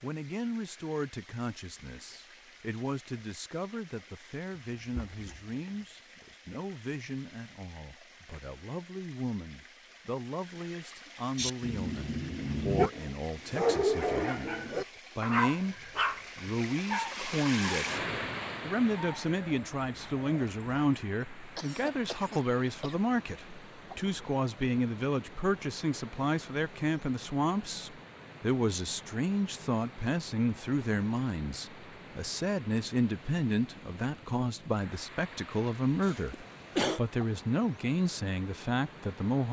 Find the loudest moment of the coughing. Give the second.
37 s.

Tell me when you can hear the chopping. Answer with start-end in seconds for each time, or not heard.
not heard.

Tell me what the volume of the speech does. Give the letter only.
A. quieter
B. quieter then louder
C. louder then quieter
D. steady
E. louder
E.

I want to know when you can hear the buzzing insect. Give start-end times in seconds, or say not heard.
not heard.